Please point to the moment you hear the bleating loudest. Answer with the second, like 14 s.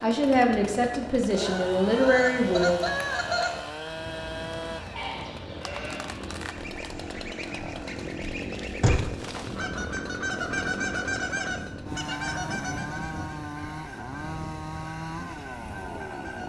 5 s.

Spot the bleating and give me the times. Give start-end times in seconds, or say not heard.
5.0-6.4.